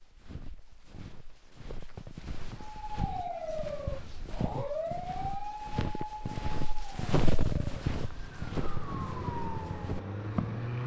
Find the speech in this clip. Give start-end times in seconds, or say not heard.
not heard.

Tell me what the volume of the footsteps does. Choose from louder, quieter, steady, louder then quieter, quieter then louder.
louder then quieter.